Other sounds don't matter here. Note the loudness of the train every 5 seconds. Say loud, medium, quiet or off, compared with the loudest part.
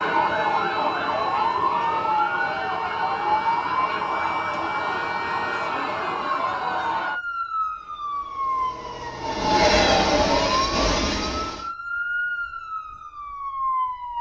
off, loud, loud.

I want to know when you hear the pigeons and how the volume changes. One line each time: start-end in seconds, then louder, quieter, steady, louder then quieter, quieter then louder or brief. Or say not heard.
not heard.